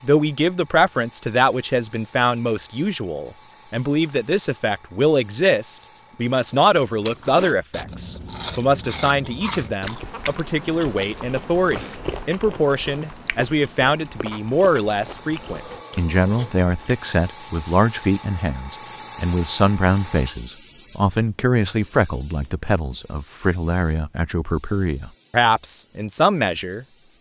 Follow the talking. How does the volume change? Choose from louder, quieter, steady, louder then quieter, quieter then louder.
steady.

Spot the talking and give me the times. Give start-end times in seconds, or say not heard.
0.0-26.9.